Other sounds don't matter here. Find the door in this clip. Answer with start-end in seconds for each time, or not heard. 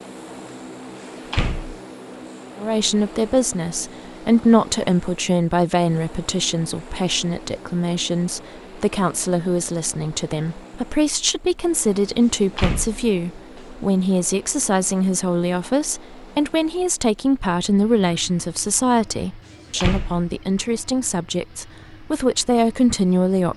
1.1-1.8, 12.3-13.8, 19.5-20.3.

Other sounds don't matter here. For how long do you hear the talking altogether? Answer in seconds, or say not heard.
21 s.